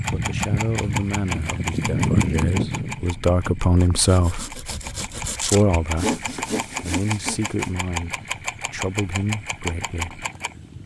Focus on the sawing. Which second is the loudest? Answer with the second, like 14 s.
6 s.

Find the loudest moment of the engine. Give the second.
2 s.